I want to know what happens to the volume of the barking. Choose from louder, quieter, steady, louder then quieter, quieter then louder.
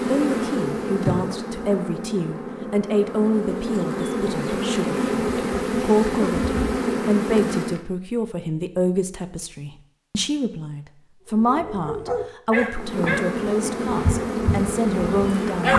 quieter.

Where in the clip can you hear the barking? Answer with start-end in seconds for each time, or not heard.
11.3-15.7.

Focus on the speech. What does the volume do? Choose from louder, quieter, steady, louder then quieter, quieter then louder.
steady.